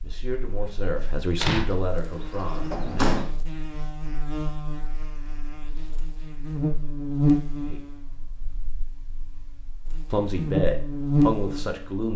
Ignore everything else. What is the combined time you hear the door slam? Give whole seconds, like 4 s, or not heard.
2 s.